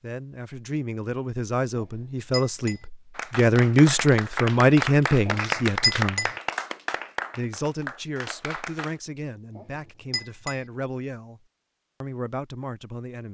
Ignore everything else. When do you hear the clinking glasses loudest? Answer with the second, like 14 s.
6 s.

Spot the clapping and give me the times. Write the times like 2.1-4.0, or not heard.
3.1-9.0.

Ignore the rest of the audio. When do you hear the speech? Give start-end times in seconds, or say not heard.
0.0-6.3, 7.3-11.4, 12.0-13.3.